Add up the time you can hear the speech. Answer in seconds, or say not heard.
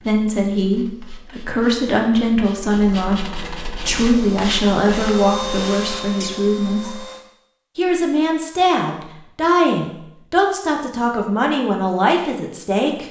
12 s.